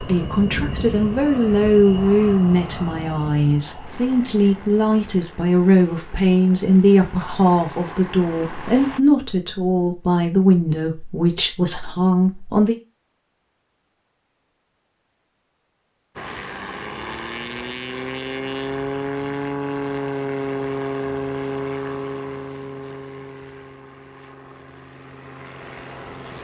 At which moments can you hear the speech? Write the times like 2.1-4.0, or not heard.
0.0-12.8.